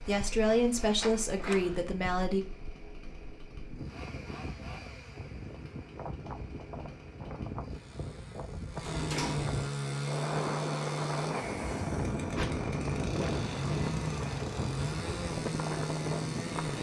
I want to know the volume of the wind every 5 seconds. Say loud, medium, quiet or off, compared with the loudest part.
quiet, medium, loud, loud.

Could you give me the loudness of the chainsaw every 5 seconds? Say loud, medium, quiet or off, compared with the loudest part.
quiet, medium, loud, loud.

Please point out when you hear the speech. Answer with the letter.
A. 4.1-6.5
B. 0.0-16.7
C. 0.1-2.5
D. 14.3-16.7
C.